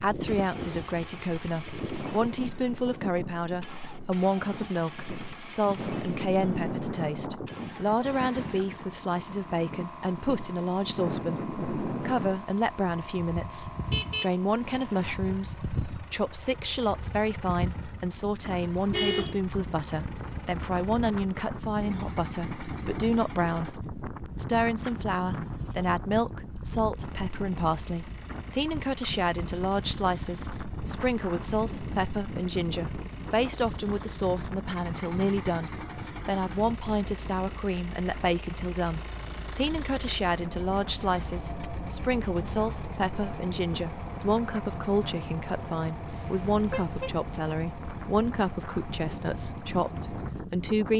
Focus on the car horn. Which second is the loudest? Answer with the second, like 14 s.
19 s.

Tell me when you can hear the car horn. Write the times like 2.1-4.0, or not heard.
13.8-15.2, 18.9-19.4, 46.0-47.1.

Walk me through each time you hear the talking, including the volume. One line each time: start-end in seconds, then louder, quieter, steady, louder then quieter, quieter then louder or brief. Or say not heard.
0.0-50.9 steady.